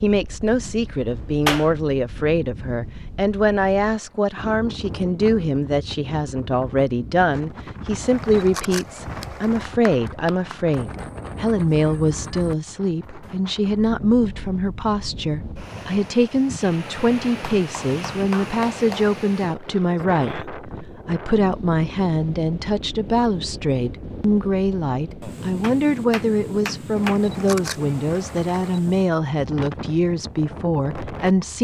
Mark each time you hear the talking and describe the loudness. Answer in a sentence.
The talking can be heard from 0.0 to 31.5 s, at a steady volume.